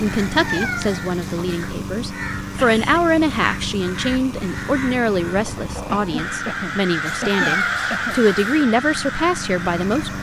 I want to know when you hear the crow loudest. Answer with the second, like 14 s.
8 s.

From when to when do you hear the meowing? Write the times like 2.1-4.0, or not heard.
0.3-1.8, 7.0-8.7.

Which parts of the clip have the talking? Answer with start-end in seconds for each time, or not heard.
0.0-10.1.